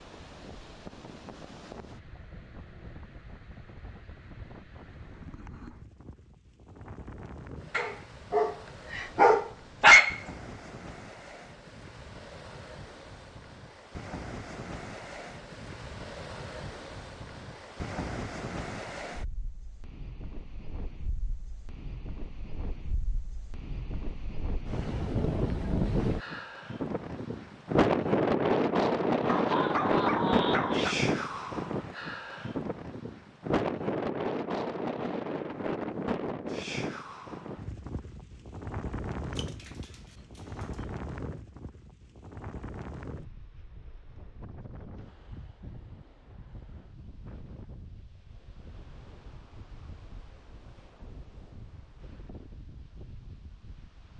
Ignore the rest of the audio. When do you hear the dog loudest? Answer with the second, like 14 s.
10 s.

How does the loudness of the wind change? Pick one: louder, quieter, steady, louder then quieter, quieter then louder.
louder then quieter.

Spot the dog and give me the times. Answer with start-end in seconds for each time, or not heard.
7.8-10.2, 29.2-30.9, 39.4-40.8.